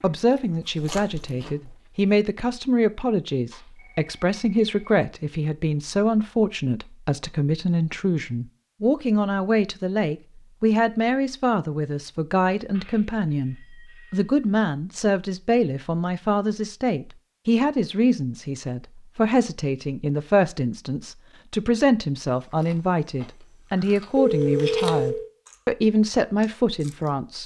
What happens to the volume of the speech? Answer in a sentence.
The loudness of the speech stays about the same.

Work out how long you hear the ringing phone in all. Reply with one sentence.
The ringing phone can be heard for 4 seconds in total.